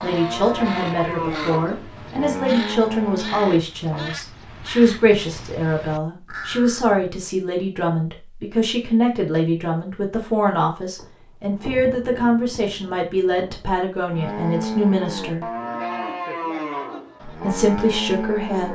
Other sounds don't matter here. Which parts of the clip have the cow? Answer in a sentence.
The cow can be heard from 0.0 to 4.2 s and from 14.1 to 18.7 s.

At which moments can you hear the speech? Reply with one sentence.
The speech can be heard from 0.0 to 15.5 s and from 17.2 to 18.7 s.